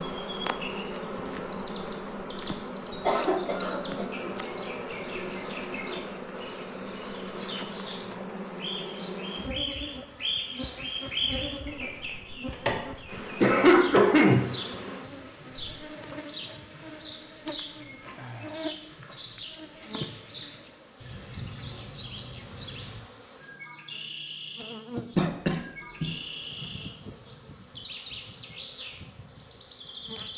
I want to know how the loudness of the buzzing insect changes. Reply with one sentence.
The volume of the buzzing insect goes down.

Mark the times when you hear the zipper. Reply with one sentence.
You can't hear the zipper here.